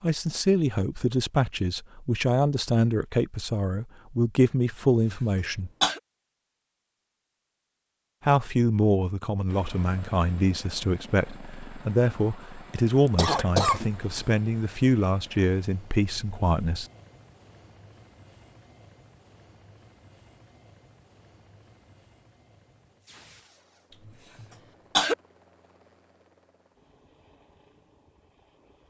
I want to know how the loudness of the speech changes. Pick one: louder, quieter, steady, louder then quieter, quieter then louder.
steady.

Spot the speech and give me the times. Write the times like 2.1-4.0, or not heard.
0.0-5.7, 8.2-16.9.